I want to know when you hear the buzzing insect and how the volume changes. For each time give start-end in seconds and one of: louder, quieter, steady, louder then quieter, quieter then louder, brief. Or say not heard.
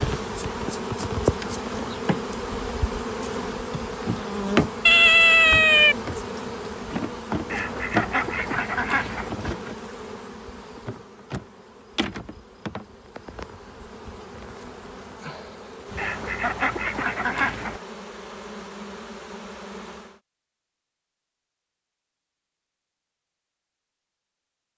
0.0-20.2 quieter.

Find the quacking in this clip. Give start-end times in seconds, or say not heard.
7.5-9.3, 15.9-17.8.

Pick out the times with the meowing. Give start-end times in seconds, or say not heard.
4.8-6.0.